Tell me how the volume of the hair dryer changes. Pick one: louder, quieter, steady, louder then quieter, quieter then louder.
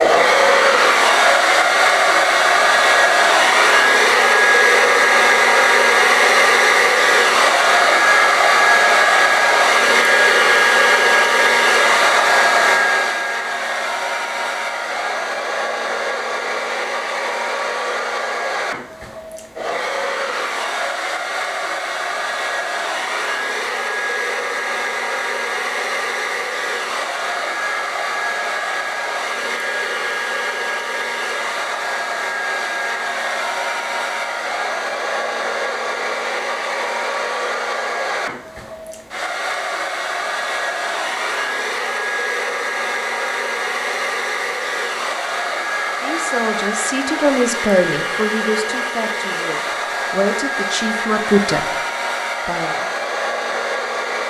quieter.